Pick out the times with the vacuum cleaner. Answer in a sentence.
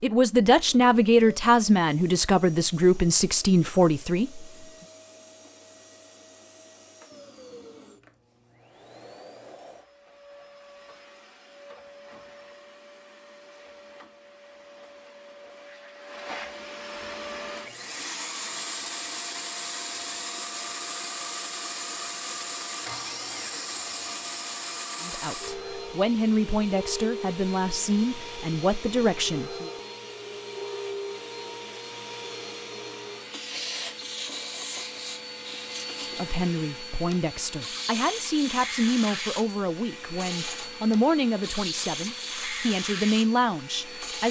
You can hear the vacuum cleaner from 0.1 to 44.2 s.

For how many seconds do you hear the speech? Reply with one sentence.
The speech can be heard for 17 seconds in total.